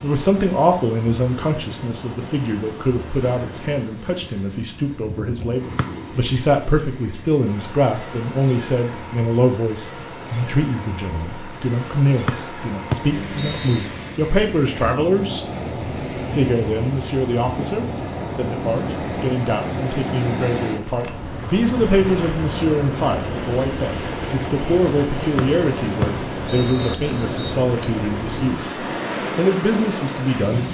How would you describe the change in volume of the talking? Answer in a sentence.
The volume of the talking stays about the same.